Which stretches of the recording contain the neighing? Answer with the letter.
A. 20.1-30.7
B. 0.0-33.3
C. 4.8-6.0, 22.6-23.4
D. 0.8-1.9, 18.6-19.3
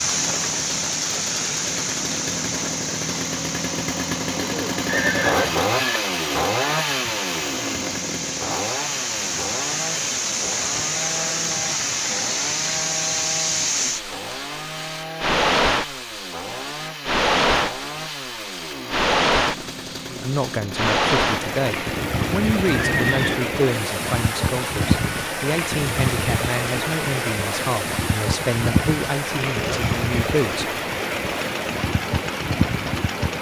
C.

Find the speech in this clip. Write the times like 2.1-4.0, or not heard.
20.1-30.7.